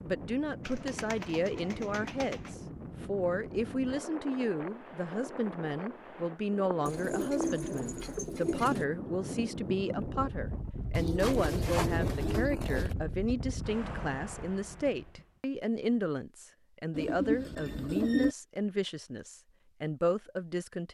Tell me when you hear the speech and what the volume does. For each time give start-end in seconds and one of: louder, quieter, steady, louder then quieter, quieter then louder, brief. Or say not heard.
0.0-20.8 steady.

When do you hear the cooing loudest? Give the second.
18 s.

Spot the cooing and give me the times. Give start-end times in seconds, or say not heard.
0.7-2.5, 6.8-8.8, 10.9-12.9, 16.9-18.4.